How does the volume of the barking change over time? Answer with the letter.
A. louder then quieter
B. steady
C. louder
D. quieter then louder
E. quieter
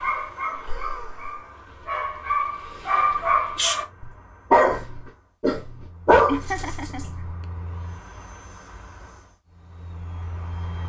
C.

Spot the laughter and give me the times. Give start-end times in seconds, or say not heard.
0.6-1.4, 6.2-7.5.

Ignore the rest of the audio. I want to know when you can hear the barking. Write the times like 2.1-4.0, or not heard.
0.0-7.3.